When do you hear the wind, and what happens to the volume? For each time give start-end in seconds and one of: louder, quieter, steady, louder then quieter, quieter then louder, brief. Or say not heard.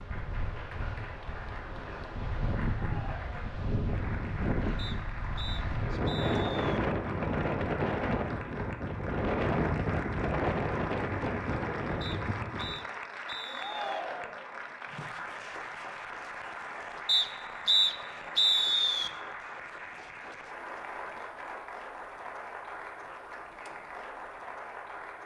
0.0-12.8 louder.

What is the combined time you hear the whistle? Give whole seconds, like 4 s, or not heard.
6 s.